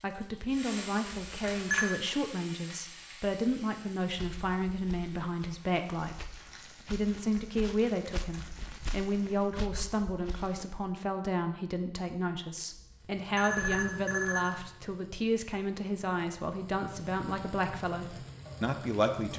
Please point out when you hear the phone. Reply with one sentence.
You can hear the phone from 1.1 to 1.9 s and from 12.8 to 14.4 s.